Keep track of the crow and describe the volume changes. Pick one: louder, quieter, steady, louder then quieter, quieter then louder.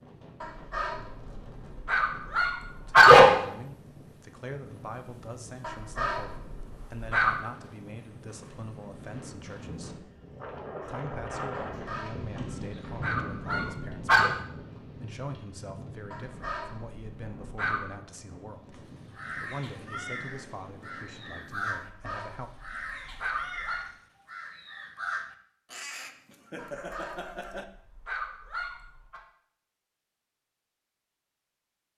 steady.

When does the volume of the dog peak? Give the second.
3 s.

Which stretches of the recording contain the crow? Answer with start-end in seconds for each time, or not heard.
18.7-27.6.